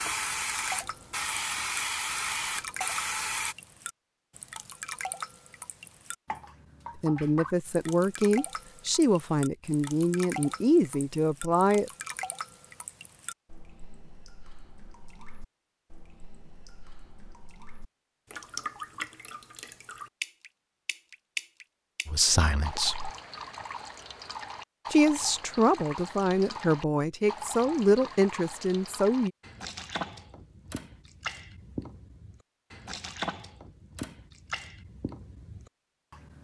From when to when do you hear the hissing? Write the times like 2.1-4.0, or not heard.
0.0-3.5.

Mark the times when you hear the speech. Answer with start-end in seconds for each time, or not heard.
7.0-11.9, 22.1-23.1, 24.9-29.3.